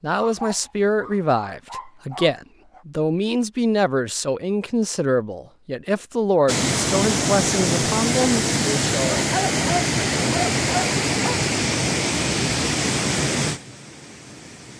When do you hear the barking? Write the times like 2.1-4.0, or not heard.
0.2-2.9, 9.1-11.4.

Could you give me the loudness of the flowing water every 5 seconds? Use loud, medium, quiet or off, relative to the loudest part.
off, loud, loud.